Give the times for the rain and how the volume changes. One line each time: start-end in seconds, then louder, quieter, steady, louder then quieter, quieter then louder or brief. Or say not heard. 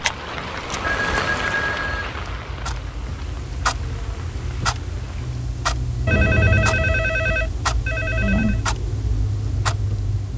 0.0-5.5 quieter.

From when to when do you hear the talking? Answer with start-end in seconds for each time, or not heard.
8.2-8.6.